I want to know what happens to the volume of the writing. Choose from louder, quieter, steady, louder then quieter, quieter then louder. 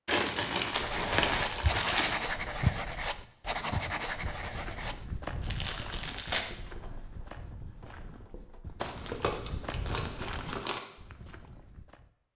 quieter.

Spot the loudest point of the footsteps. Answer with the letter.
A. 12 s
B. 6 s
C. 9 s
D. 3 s
D.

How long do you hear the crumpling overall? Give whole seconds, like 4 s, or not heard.
5 s.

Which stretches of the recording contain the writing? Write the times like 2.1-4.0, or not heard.
0.7-8.7.